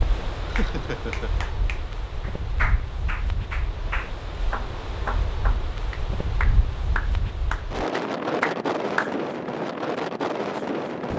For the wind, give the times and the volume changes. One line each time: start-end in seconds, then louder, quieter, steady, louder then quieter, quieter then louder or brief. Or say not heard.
0.0-11.1 louder.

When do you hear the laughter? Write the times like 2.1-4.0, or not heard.
0.5-1.4.